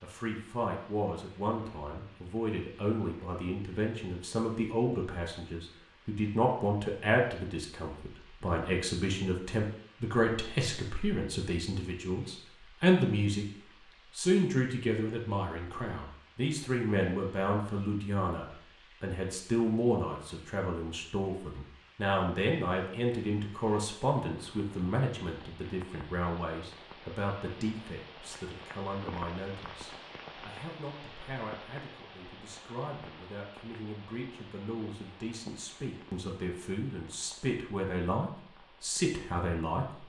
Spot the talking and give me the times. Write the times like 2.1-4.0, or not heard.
0.0-13.5, 14.1-40.0.